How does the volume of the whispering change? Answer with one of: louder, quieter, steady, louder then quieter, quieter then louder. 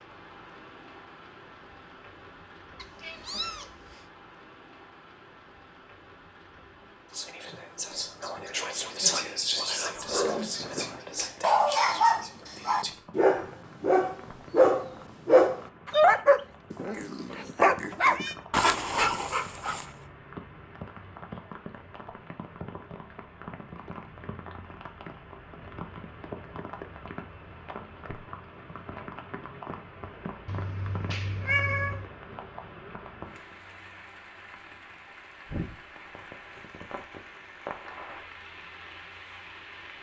louder then quieter.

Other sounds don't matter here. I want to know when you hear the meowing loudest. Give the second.
32 s.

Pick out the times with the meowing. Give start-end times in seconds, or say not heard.
2.8-4.0, 16.7-18.4, 30.4-32.1.